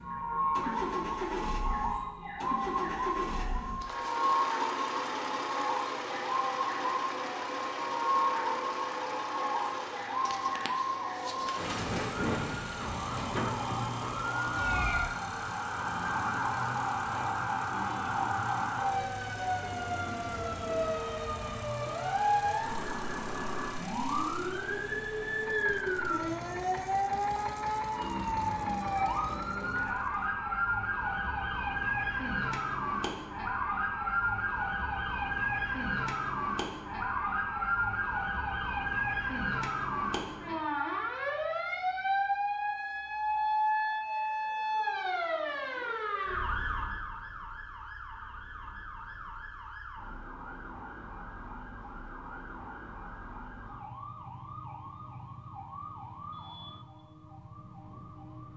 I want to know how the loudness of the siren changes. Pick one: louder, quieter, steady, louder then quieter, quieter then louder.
quieter.